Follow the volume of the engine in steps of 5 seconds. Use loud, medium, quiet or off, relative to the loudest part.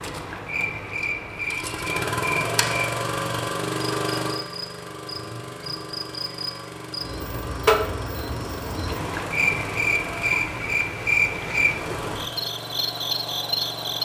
loud, medium, medium.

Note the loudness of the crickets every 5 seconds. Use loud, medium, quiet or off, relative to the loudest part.
medium, loud, loud.